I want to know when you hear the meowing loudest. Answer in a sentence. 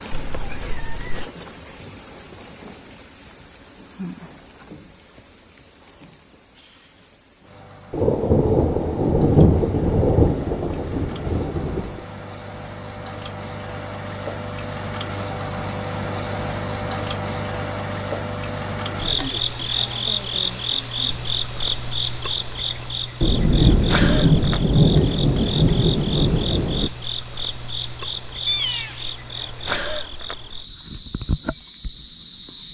The loudest moment of the meowing is at 29 seconds.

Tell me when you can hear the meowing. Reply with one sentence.
You can hear the meowing from 0.1 to 1.3 s and from 28.4 to 29.1 s.